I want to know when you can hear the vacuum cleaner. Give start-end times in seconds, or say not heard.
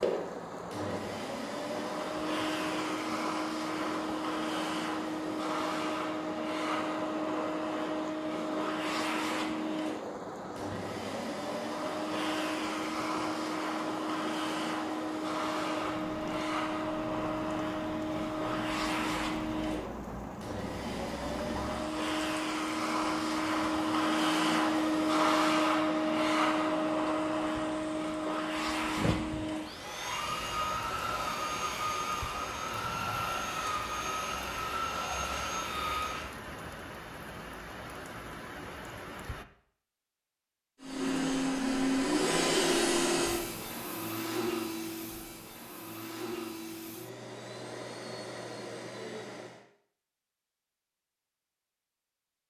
0.0-36.4, 40.8-49.6.